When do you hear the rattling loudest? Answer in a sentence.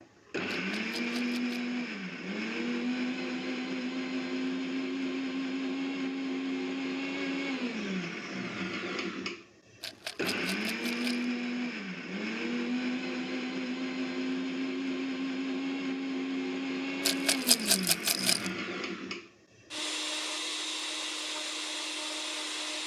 The loudest moment of the rattling is at 18 seconds.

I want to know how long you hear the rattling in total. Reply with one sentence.
The rattling can be heard for 4 seconds in total.